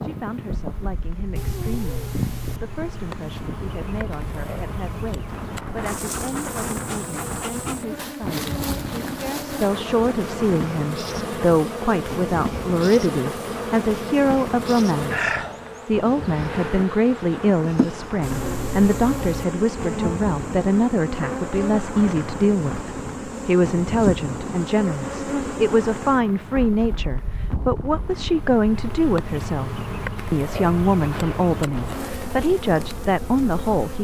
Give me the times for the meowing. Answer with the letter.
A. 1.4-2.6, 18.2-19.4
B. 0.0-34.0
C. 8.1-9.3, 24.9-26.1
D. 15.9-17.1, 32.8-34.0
A.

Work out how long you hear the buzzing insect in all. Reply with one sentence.
You can hear the buzzing insect for 34 seconds altogether.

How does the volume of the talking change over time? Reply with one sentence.
The volume of the talking goes up.